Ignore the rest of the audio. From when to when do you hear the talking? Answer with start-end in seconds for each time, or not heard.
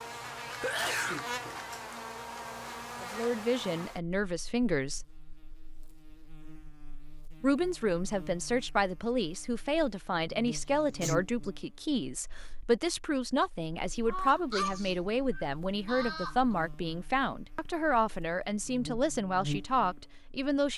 3.0-5.0, 7.4-20.7.